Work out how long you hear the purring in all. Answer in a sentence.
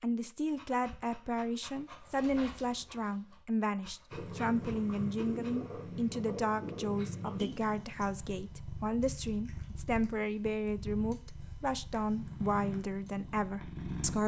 You can hear the purring for 10 seconds altogether.